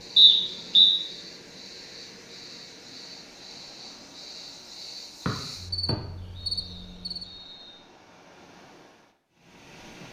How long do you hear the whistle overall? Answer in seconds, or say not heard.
3 s.